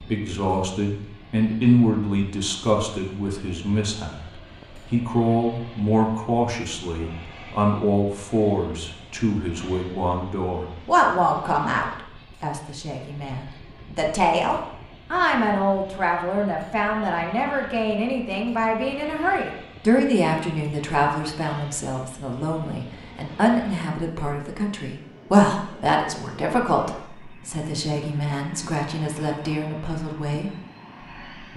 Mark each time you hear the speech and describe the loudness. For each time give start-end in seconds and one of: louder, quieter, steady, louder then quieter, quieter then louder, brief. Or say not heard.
0.0-30.5 steady.